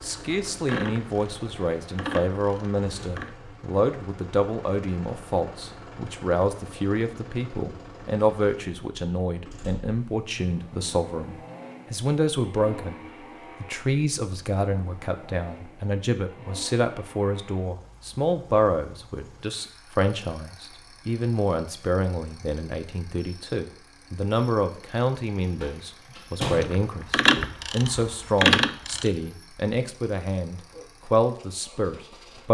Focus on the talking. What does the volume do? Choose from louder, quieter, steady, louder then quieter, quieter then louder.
steady.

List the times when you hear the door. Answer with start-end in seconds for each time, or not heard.
25.6-26.9.